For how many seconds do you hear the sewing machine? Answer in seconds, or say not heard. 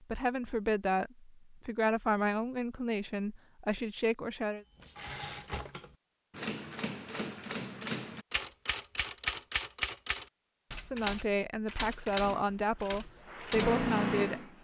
2 s.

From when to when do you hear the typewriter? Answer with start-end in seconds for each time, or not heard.
4.8-13.9.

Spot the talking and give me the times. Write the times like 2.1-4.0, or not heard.
0.0-4.7, 10.8-14.5.